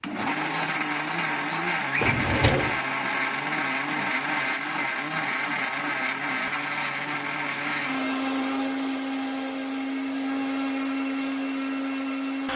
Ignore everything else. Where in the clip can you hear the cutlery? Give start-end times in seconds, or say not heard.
not heard.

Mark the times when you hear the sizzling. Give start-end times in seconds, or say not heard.
not heard.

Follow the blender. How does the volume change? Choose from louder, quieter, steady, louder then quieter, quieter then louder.
steady.